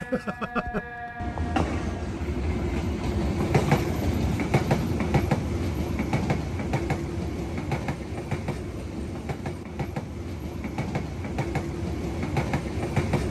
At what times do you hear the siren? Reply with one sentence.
You can hear the siren from 0.0 to 2.1 s.